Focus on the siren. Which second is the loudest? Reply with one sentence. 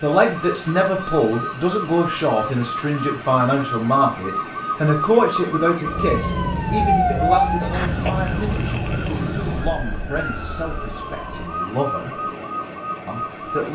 The volume of the siren peaks at 7 seconds.